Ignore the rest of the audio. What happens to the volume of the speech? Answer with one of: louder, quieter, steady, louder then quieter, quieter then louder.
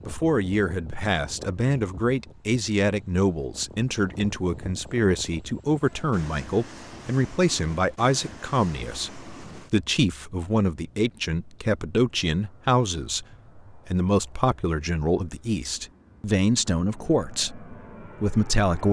steady.